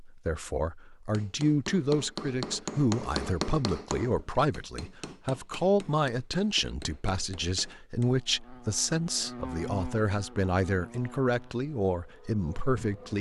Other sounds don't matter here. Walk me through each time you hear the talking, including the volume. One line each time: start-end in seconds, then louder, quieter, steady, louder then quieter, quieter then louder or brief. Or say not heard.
0.0-13.1 steady.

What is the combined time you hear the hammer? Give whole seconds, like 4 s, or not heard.
7 s.